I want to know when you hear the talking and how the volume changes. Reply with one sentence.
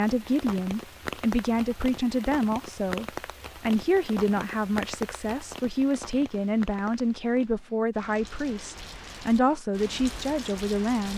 The talking can be heard from 0.0 to 11.1 s, at a steady volume.